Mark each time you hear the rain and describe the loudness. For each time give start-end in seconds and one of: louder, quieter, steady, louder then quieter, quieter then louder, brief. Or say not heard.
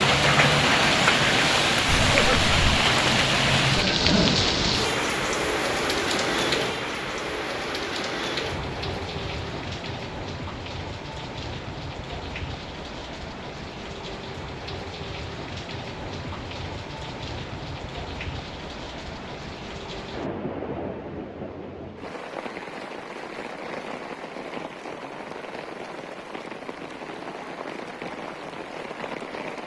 0.0-29.6 quieter.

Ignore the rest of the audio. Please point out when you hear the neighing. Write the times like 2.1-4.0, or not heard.
1.9-2.9.